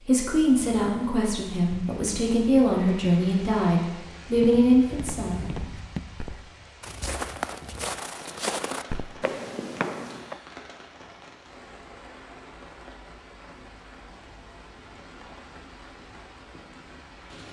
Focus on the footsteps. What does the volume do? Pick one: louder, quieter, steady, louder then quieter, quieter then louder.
louder.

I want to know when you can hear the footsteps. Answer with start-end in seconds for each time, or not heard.
4.2-10.4.